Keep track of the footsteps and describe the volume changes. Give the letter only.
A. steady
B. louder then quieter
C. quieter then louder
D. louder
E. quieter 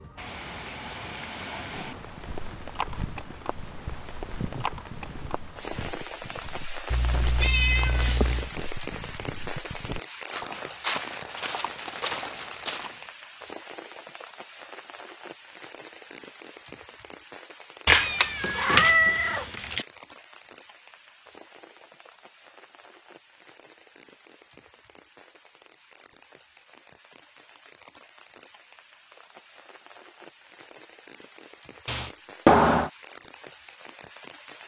D.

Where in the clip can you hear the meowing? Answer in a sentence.
The meowing can be heard from 6.9 to 8.5 s, from 17.9 to 19.9 s and from 31.9 to 32.9 s.